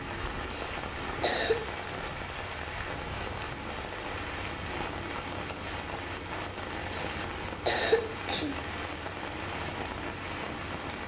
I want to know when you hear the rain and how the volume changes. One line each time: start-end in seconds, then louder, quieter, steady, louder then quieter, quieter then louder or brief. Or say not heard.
0.0-11.0 steady.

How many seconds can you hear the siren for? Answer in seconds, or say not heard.
not heard.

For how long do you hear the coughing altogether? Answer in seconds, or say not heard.
3 s.